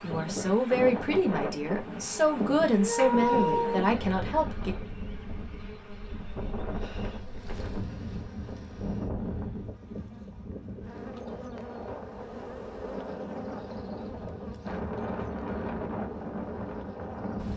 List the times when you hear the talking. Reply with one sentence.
The talking can be heard from 0.0 to 4.8 s.